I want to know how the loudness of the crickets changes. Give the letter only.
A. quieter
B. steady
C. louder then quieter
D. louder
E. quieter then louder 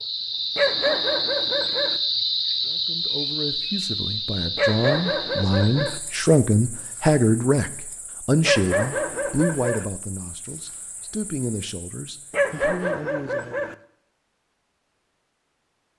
A.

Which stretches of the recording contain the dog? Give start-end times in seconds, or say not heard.
0.6-2.0, 4.5-6.0, 8.4-9.8, 12.3-13.8.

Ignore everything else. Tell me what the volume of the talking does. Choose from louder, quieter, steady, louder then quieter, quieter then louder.
louder then quieter.